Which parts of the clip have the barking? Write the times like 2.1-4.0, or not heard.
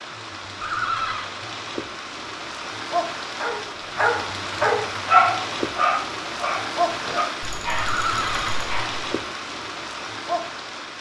3.4-9.1.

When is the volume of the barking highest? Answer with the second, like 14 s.
5 s.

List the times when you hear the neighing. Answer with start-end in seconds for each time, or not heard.
0.6-1.4, 7.8-8.6.